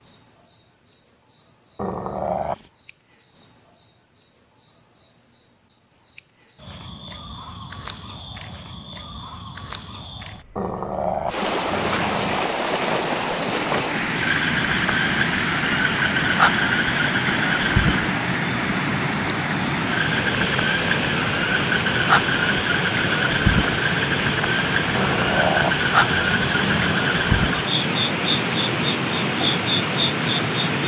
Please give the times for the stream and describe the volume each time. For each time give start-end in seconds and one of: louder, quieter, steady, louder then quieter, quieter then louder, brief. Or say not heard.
11.2-30.8 steady.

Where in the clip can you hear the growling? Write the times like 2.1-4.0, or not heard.
1.8-2.7, 10.6-12.4, 24.9-26.8.